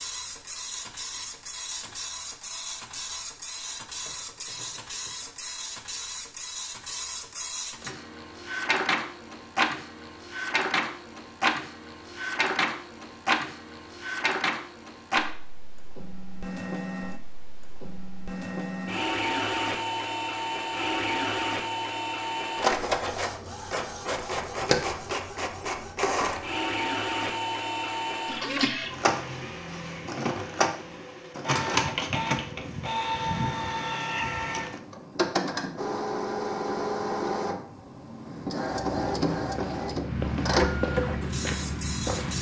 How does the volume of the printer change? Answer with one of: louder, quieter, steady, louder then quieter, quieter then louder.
louder.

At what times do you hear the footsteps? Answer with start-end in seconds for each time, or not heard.
38.8-42.3.